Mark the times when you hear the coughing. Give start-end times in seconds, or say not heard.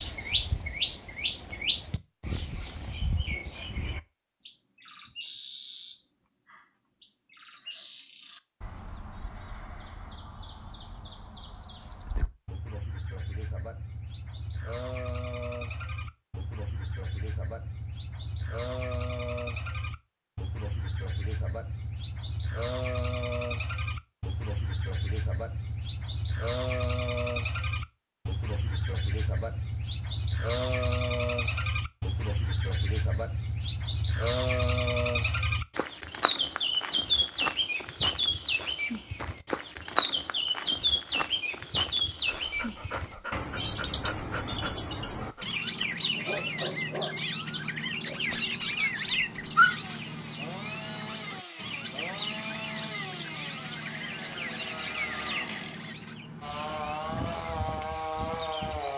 not heard.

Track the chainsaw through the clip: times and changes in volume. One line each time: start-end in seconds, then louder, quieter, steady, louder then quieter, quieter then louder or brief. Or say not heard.
49.5-58.9 louder.